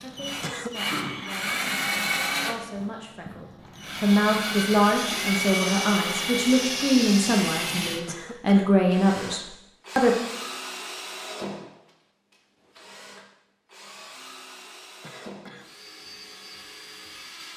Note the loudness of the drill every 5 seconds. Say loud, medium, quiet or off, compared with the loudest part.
loud, loud, medium, quiet.